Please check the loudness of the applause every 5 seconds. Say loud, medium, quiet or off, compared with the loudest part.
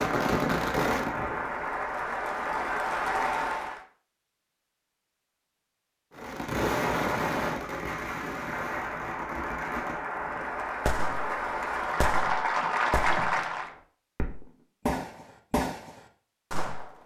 loud, medium, loud, off.